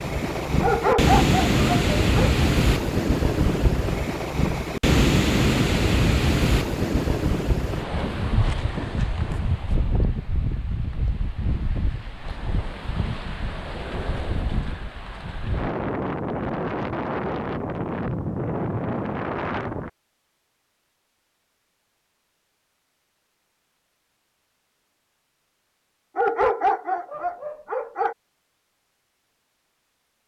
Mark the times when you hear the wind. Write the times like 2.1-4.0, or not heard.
0.0-19.9.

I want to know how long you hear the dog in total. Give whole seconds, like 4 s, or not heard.
4 s.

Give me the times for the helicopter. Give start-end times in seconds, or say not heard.
not heard.